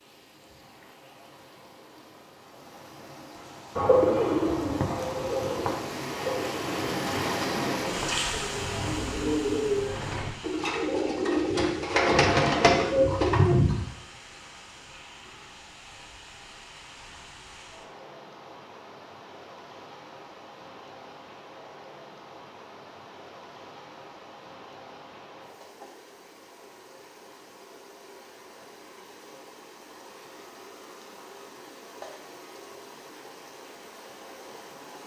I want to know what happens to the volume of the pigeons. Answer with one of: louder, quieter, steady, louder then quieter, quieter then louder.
quieter then louder.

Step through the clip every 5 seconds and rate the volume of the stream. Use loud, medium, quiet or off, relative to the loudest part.
quiet, loud, quiet, quiet, quiet, quiet, quiet.